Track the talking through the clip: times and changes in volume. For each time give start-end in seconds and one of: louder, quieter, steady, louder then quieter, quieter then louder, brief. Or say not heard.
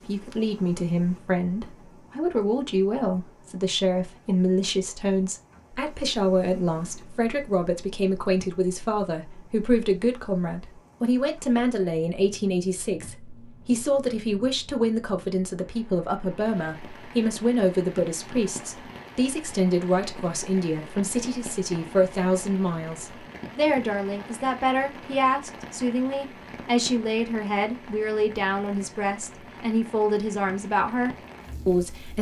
0.1-32.1 steady.